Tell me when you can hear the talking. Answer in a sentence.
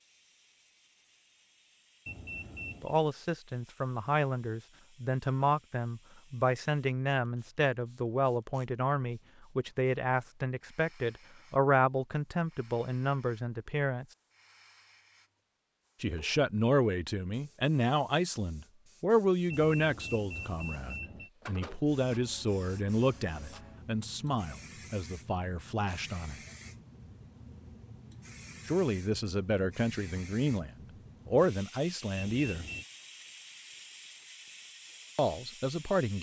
You can hear the talking from 2.8 to 14.1 s, from 16.0 to 26.4 s, from 28.6 to 32.6 s and from 35.1 to 36.1 s.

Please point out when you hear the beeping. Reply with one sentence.
You can hear the beeping from 2.0 to 3.0 s, from 19.5 to 21.3 s and from 32.1 to 32.9 s.